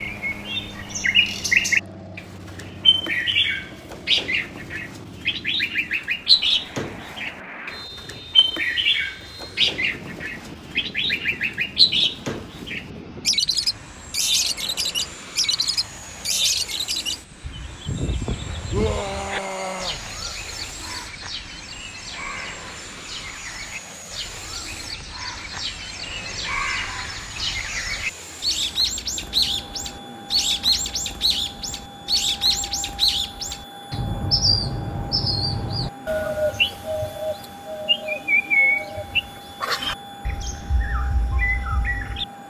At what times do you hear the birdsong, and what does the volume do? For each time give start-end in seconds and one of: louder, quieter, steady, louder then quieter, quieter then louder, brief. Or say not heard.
0.0-42.2 quieter then louder.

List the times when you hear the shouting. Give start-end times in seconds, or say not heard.
18.7-20.0.